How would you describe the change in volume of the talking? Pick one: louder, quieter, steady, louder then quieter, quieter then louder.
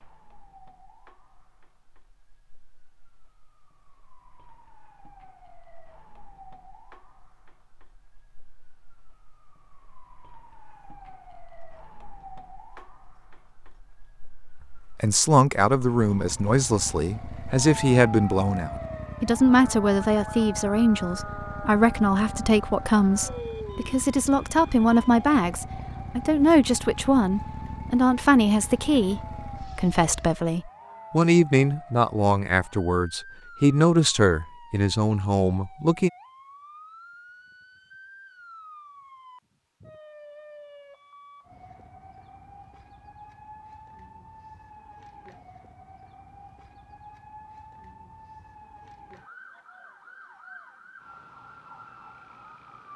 steady.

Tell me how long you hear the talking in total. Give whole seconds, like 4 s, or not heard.
21 s.